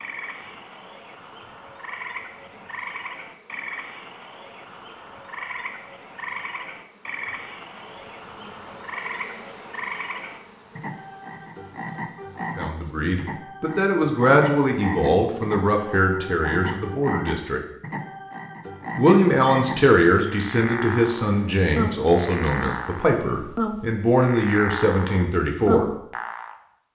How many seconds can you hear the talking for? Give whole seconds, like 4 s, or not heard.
12 s.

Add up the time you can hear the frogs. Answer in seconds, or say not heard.
27 s.